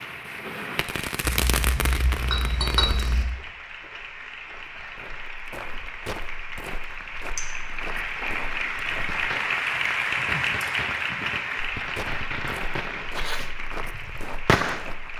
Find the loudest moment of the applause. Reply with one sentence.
The volume of the applause peaks at 10 seconds.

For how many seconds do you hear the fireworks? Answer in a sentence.
You can hear the fireworks for 9 seconds altogether.